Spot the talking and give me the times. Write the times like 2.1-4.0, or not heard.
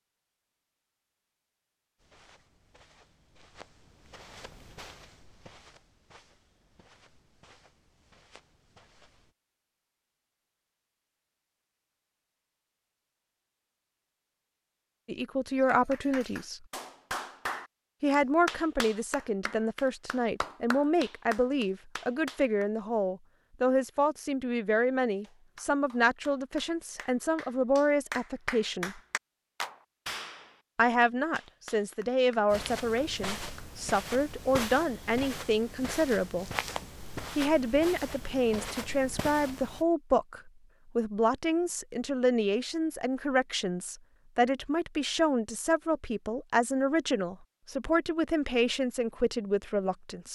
15.1-16.6, 18.0-29.0, 30.8-36.6, 37.4-50.3.